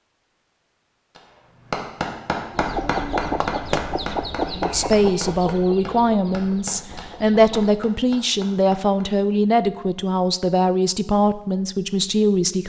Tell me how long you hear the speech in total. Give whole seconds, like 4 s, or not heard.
8 s.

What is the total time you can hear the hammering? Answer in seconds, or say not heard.
8 s.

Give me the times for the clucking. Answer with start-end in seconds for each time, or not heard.
2.5-7.8.